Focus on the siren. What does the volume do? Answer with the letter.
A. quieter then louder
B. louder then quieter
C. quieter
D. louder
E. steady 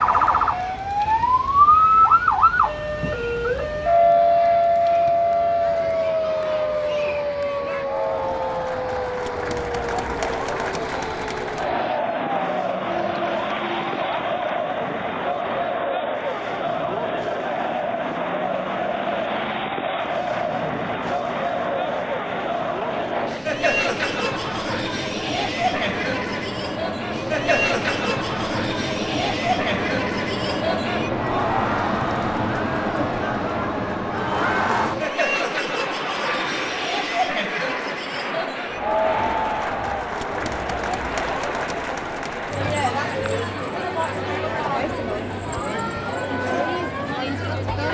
C.